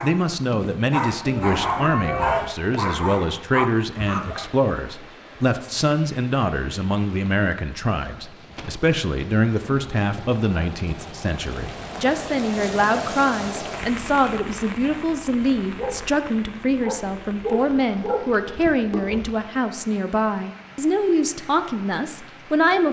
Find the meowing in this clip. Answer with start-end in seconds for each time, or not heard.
1.2-2.5.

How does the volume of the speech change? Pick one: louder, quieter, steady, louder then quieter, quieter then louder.
steady.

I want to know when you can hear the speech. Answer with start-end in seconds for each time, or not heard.
0.0-22.8.